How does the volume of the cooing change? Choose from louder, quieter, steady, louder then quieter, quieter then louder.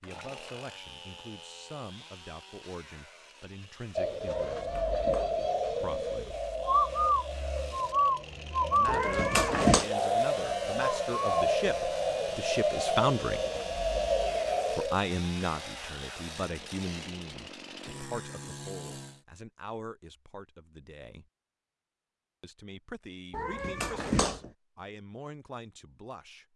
steady.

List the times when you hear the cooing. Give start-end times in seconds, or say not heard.
4.0-15.0.